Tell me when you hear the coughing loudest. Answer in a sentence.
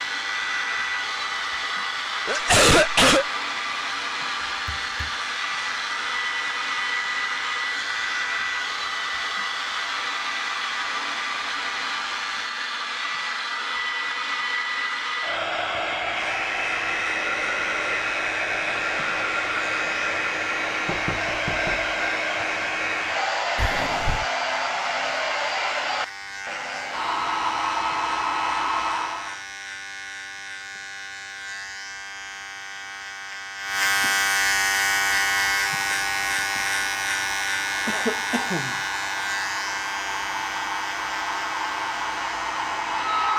The volume of the coughing peaks at 3 seconds.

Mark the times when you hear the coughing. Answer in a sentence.
You can hear the coughing from 2.2 to 3.2 s, from 23.6 to 24.2 s and from 37.9 to 38.8 s.